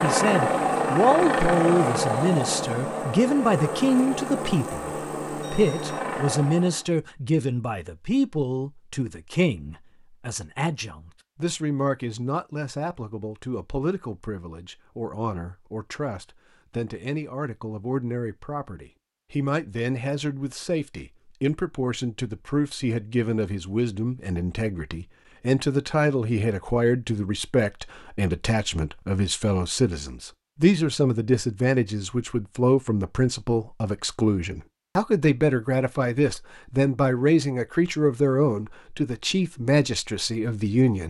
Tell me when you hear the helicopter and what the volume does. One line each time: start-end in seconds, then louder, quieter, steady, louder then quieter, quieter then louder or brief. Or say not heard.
0.0-6.9 quieter.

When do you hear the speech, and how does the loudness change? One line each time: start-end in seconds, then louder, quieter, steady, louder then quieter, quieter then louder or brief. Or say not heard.
0.0-41.0 quieter then louder.